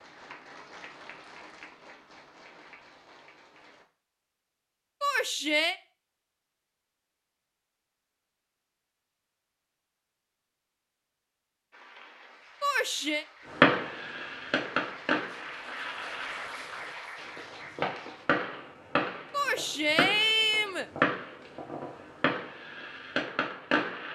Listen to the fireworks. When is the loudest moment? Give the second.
14 s.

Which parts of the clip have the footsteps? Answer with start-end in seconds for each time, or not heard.
not heard.